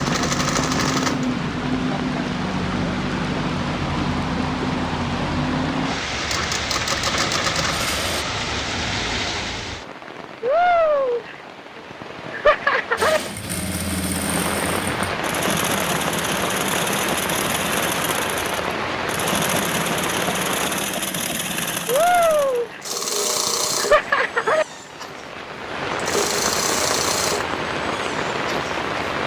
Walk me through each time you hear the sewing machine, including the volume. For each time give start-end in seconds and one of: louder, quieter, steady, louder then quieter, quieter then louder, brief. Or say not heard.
0.0-1.3 brief
6.2-8.2 brief
12.9-29.2 steady.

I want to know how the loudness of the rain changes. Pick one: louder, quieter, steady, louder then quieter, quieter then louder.
steady.